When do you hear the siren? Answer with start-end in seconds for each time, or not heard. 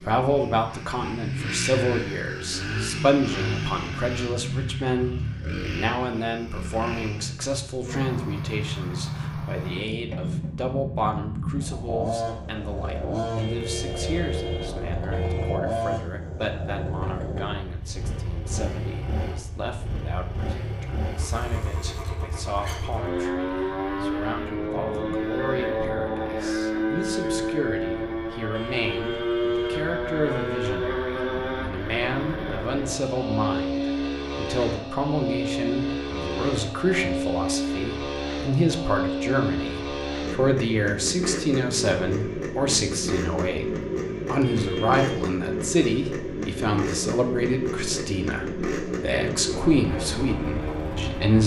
not heard.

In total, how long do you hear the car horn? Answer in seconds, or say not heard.
5 s.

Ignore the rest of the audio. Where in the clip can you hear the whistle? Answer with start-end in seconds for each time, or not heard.
not heard.